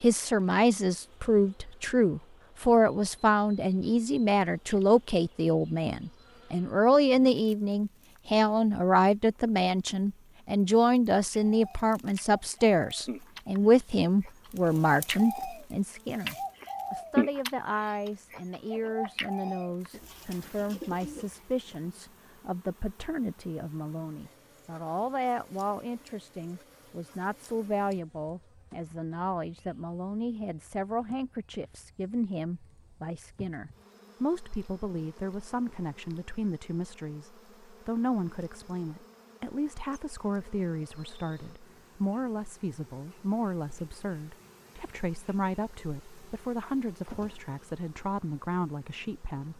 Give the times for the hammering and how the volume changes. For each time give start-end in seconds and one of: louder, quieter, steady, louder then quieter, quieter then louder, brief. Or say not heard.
not heard.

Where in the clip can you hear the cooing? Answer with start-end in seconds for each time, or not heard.
11.5-21.7.